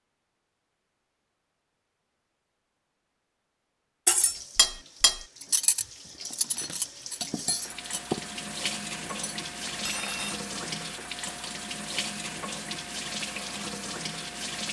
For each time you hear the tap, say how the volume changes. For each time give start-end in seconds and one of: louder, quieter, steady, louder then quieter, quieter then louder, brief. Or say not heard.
4.2-14.6 louder.